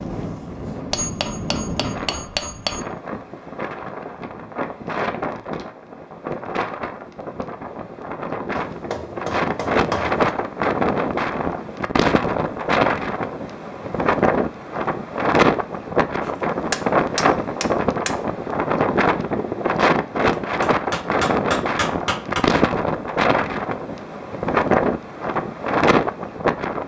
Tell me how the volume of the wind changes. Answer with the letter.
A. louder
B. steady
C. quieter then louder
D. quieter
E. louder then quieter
A.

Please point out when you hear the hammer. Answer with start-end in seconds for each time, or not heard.
0.9-2.8, 8.6-10.3, 16.2-18.1, 20.4-22.4.